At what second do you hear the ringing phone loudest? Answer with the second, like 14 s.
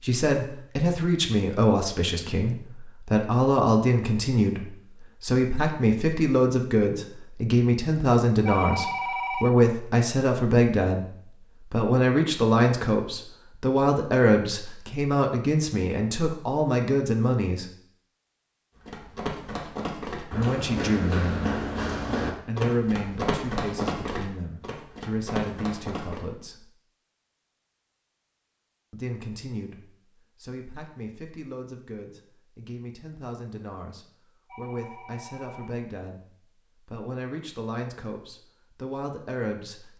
9 s.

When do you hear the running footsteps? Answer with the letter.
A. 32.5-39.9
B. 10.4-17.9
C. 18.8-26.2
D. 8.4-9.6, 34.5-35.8
C.